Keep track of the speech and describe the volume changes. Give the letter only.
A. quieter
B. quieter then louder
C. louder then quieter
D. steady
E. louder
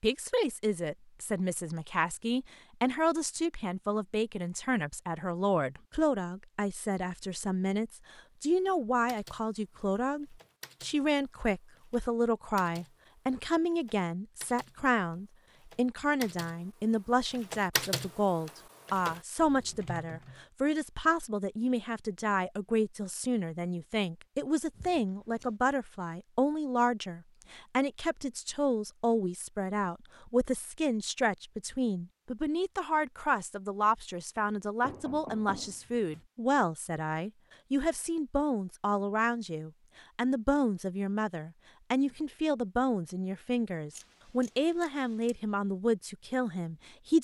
D.